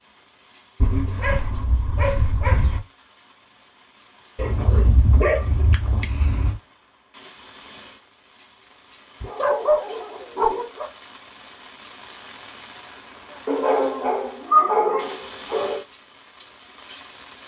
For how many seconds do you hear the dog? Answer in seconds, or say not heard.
8 s.